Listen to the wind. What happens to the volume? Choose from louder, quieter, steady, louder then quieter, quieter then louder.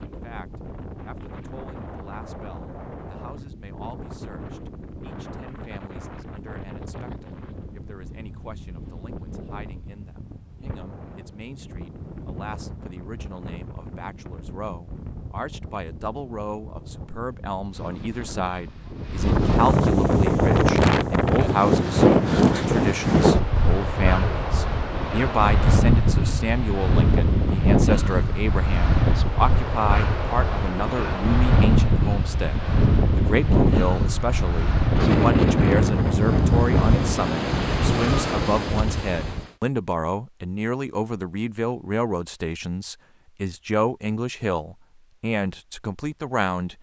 louder.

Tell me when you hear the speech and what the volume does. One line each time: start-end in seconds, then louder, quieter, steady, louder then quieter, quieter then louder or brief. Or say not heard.
0.1-46.7 louder.